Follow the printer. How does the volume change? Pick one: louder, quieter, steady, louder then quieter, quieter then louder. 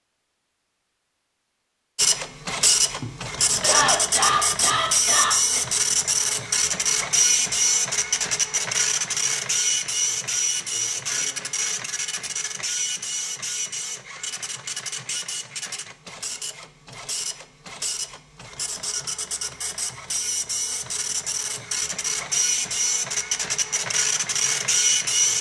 quieter then louder.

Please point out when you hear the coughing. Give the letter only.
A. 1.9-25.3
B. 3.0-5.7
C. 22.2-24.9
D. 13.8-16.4
B.